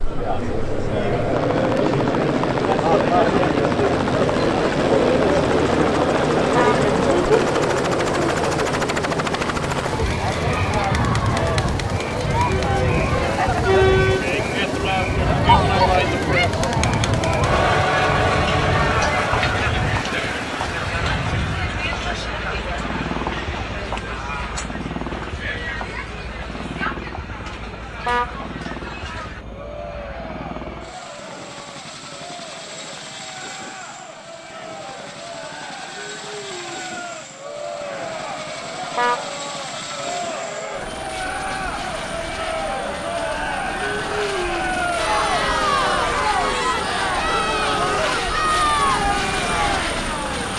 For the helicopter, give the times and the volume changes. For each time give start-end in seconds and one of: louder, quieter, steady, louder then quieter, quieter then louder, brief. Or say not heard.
0.0-50.5 quieter then louder.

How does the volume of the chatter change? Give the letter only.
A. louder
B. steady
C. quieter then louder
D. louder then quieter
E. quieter
C.